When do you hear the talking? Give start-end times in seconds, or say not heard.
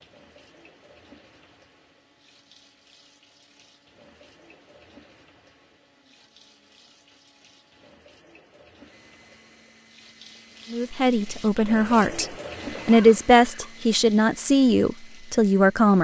10.7-15.9.